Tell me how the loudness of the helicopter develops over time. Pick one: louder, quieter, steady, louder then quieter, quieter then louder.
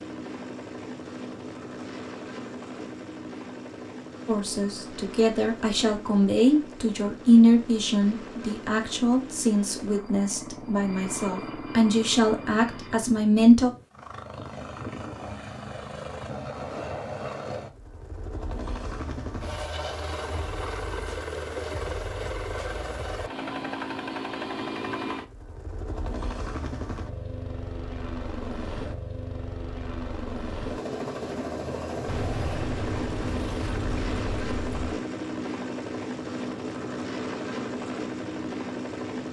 louder.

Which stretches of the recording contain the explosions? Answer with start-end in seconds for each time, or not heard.
32.0-34.9.